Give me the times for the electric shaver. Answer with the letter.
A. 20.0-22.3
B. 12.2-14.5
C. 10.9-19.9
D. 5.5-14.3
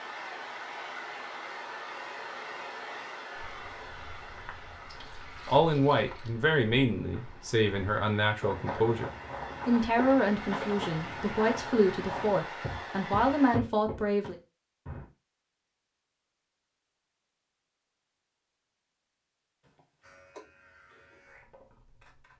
A.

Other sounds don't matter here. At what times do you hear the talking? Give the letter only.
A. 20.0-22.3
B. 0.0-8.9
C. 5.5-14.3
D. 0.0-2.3
C.